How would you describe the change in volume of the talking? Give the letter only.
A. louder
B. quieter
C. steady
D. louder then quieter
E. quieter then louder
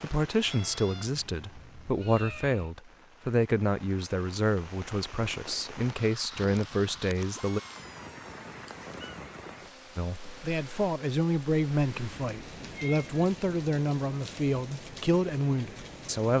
C.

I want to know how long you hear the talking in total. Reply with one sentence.
You can hear the talking for 14 seconds altogether.